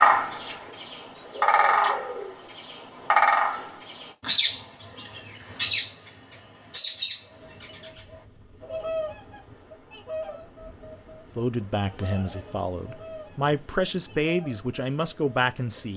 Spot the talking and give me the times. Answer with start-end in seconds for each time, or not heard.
11.3-15.9.